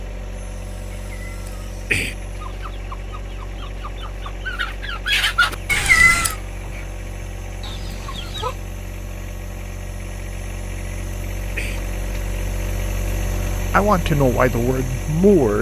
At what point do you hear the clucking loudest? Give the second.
5 s.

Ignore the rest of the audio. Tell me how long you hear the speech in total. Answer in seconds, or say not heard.
2 s.